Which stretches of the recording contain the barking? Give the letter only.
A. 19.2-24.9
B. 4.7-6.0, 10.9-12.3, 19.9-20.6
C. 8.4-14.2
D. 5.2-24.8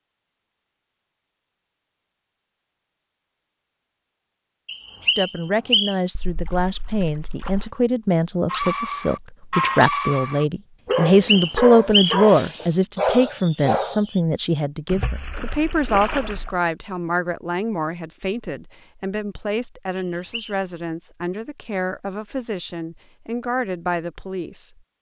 C.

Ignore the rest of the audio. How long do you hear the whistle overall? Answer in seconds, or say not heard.
3 s.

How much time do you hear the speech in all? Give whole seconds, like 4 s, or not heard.
20 s.